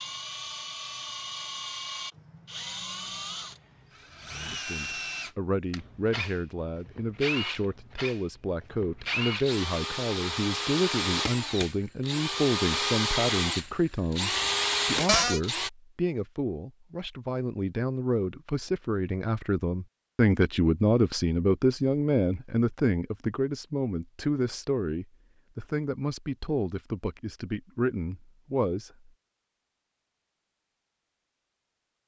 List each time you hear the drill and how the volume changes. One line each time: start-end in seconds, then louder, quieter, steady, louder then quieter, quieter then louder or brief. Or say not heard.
0.0-15.7 louder.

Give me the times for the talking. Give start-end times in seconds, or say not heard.
4.5-29.1.